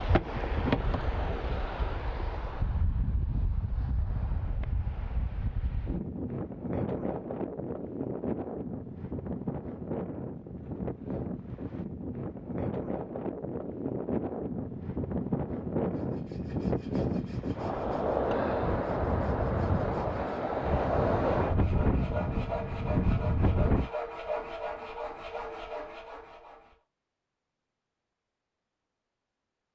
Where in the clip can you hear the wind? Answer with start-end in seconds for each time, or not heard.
0.0-23.9.